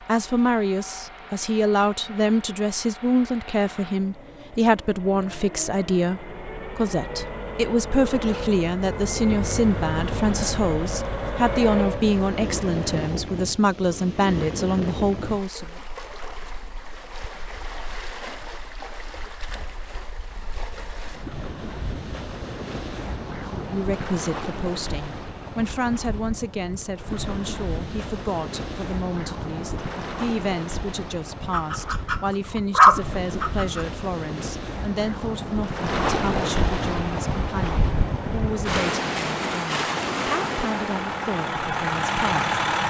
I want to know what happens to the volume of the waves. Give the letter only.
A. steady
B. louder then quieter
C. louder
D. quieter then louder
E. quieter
C.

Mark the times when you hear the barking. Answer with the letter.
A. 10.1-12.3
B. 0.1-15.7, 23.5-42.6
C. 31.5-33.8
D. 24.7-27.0
C.